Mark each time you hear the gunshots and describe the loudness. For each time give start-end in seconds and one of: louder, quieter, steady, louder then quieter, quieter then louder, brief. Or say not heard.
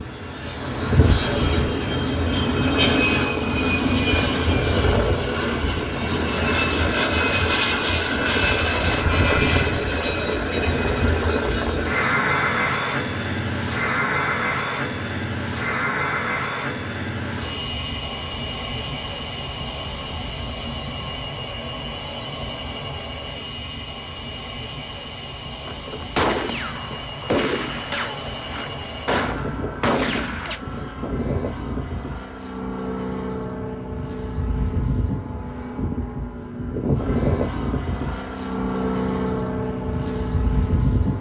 25.6-30.6 quieter then louder.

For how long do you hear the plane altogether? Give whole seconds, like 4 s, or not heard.
41 s.